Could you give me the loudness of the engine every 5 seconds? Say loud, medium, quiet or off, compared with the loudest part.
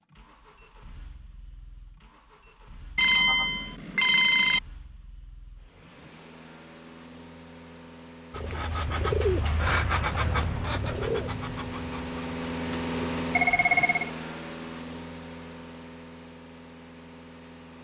quiet, quiet, loud, medium.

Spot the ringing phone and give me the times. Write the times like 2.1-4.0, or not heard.
3.0-4.6, 13.3-14.1.